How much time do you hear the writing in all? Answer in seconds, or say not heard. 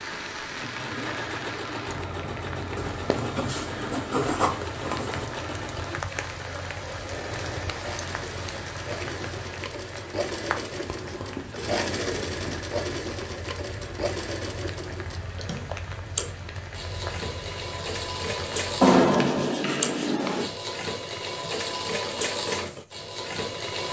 6 s.